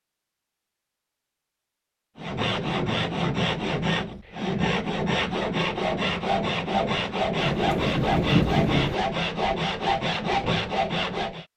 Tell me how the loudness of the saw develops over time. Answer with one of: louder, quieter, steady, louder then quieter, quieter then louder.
steady.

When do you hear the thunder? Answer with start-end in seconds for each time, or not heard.
7.3-8.9.